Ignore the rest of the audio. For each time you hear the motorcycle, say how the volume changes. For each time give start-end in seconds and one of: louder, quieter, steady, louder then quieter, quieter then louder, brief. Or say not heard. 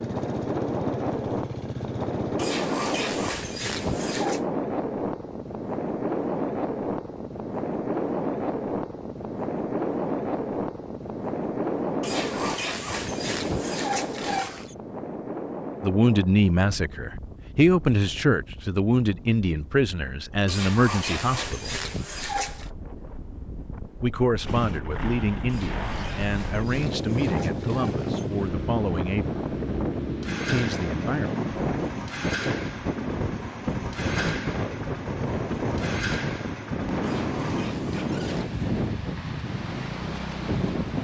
0.0-2.5 brief
24.4-40.9 steady.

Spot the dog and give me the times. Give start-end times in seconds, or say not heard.
2.4-4.4, 12.0-14.8, 20.4-22.7, 25.4-28.3, 37.0-38.6.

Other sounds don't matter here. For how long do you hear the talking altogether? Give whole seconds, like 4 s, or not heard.
12 s.